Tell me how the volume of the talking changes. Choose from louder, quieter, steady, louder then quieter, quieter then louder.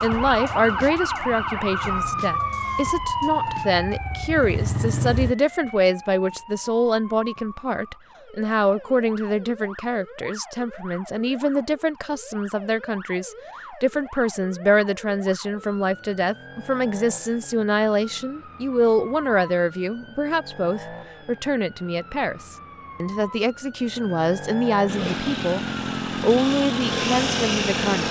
steady.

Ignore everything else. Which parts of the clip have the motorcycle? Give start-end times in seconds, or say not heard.
0.0-5.3, 24.9-28.0.